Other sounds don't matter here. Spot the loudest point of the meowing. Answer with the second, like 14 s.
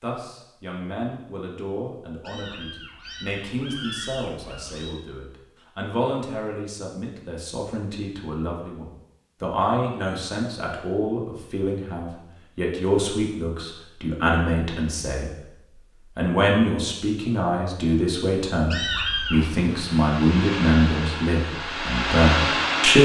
19 s.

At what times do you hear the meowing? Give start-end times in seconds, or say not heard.
2.2-5.0, 18.7-19.5.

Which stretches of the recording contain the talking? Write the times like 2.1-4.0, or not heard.
0.0-15.3, 16.1-23.0.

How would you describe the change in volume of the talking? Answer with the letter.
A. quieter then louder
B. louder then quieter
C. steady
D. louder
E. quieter
D.